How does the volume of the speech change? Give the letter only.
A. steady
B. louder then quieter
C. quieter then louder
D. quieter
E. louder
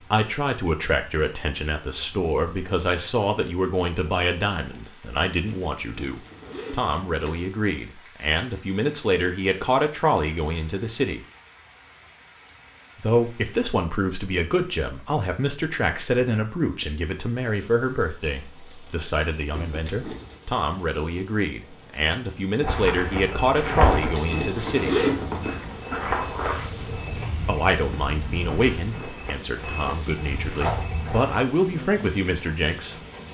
A.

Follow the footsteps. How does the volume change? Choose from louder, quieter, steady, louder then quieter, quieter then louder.
quieter then louder.